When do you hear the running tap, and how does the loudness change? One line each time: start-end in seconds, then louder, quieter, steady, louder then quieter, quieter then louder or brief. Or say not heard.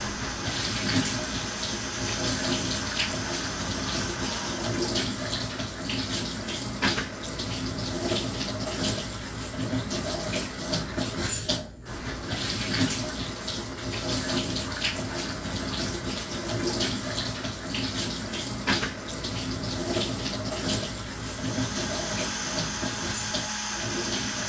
0.0-24.4 steady.